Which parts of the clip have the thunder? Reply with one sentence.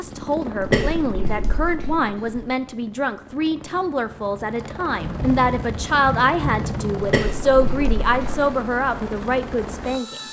The thunder can be heard from 5.0 to 7.0 s.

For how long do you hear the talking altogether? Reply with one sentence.
The talking can be heard for 10 seconds in total.